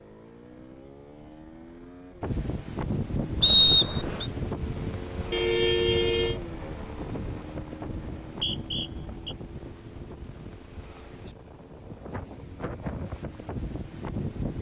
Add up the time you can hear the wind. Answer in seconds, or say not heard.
12 s.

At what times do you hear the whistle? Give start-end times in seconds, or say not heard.
3.4-4.2, 8.2-9.3.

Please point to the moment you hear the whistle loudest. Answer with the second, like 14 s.
4 s.